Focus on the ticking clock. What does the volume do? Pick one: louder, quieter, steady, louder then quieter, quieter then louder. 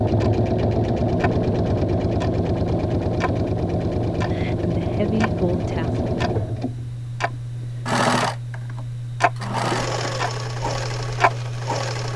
louder.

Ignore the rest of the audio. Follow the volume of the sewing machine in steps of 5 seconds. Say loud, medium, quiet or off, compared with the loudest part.
loud, loud, medium.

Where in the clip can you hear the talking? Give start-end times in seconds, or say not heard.
4.3-6.0.